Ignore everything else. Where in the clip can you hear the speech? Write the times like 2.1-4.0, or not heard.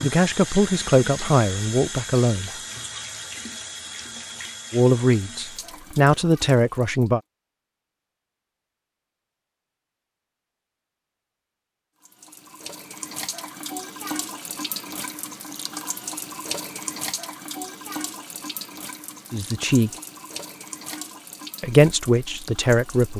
0.0-2.5, 4.7-7.2, 19.3-19.9, 21.6-23.1.